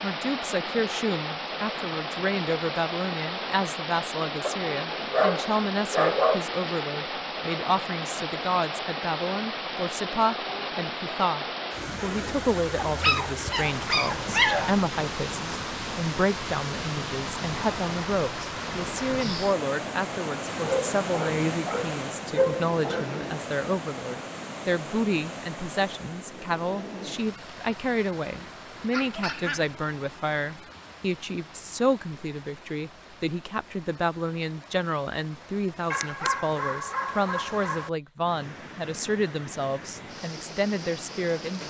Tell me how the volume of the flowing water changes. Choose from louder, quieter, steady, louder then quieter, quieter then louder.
quieter.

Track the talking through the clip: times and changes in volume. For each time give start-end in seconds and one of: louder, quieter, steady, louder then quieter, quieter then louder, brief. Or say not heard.
0.0-41.6 steady.